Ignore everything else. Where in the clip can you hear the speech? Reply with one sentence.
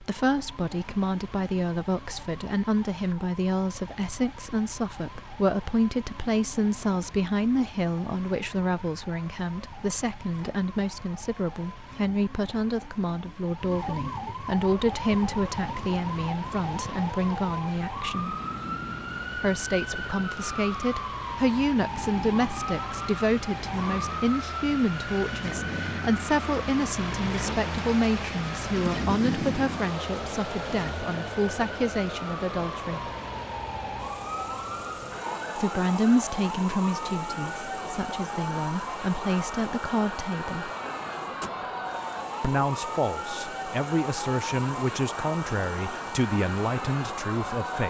The speech can be heard from 0.0 to 18.4 s, from 19.4 to 33.1 s, from 35.5 to 40.7 s and from 42.4 to 47.8 s.